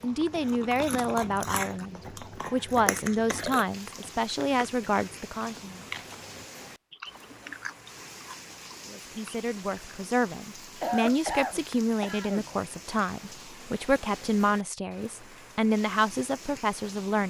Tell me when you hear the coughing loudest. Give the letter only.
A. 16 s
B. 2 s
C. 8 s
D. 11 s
D.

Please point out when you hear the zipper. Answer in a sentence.
You can't hear the zipper here.